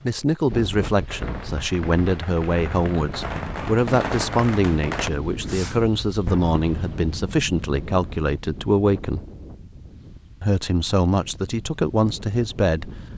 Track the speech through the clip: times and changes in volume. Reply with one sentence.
You can hear the speech from 0.0 to 9.2 s, at a steady volume; and briefly from 10.4 to 12.9 s.